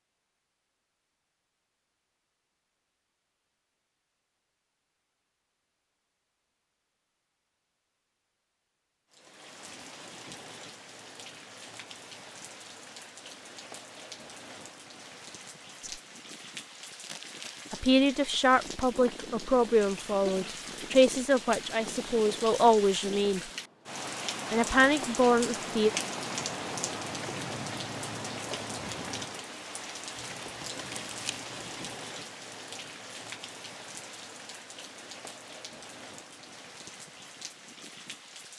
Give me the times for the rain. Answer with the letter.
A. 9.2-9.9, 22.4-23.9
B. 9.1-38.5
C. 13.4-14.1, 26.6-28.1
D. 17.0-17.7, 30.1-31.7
B.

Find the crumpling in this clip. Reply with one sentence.
You can hear the crumpling from 17.0 to 17.7 s and from 30.1 to 31.7 s.